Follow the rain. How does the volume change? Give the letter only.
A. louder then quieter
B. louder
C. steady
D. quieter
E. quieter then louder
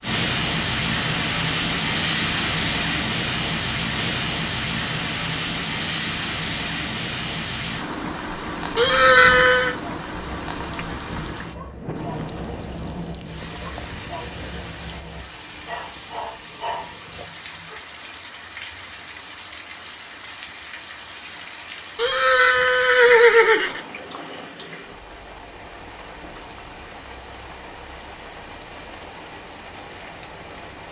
D.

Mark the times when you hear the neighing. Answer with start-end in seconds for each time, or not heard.
8.8-9.8, 21.9-23.8.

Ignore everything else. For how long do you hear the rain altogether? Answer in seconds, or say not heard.
31 s.